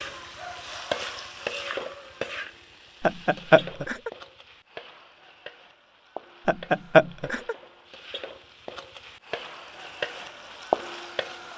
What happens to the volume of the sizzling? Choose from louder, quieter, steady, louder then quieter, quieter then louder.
quieter then louder.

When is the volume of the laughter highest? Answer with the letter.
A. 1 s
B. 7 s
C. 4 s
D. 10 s
B.